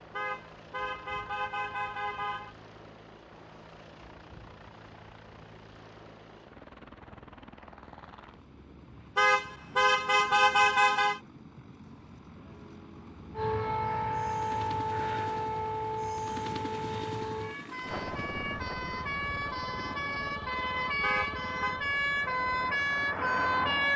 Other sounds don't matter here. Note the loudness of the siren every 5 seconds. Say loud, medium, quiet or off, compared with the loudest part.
off, off, loud, medium, loud.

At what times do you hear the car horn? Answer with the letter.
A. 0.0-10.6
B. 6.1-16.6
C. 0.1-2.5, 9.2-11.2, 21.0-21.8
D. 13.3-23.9
C.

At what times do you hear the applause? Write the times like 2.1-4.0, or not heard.
not heard.